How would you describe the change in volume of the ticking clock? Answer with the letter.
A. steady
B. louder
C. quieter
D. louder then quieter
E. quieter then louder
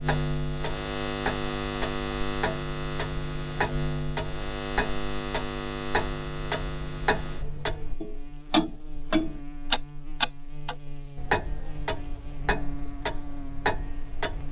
D.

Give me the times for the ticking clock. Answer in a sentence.
You can hear the ticking clock from 0.0 to 14.4 s.